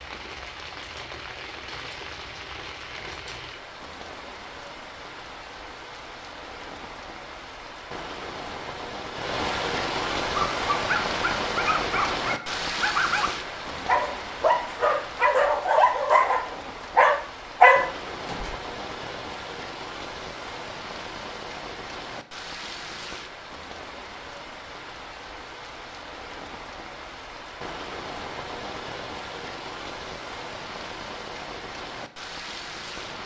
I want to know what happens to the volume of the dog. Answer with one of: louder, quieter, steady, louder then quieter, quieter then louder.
louder.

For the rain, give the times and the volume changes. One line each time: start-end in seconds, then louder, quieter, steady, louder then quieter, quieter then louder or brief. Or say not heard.
0.0-33.2 louder then quieter.